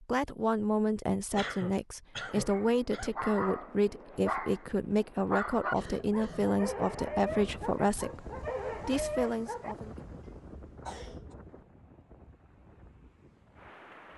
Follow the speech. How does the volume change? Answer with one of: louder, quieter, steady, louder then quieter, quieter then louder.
steady.